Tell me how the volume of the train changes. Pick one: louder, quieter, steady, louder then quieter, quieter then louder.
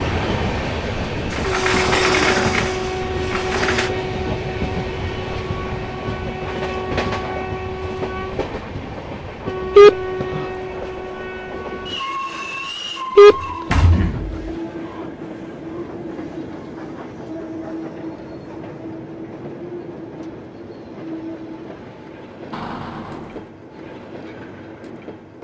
quieter.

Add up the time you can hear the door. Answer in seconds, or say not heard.
5 s.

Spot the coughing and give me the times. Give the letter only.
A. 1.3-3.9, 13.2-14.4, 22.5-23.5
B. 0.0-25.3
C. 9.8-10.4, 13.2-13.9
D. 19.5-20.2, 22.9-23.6
C.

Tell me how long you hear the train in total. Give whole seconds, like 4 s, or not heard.
25 s.